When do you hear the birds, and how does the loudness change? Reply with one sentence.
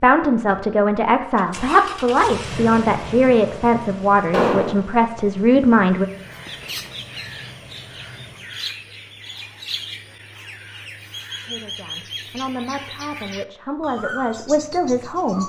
The birds can be heard from 5.9 to 15.4 s, at a steady volume.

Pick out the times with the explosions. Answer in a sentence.
The explosions can be heard from 4.3 to 4.8 s.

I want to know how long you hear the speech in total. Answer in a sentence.
The speech can be heard for 10 seconds in total.